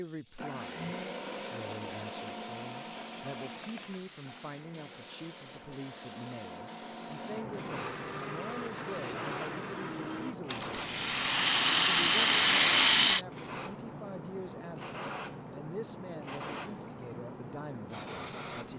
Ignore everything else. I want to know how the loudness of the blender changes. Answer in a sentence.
The volume of the blender goes down, then up.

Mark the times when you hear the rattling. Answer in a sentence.
You can hear the rattling from 3.2 to 4.0 s and from 10.5 to 13.2 s.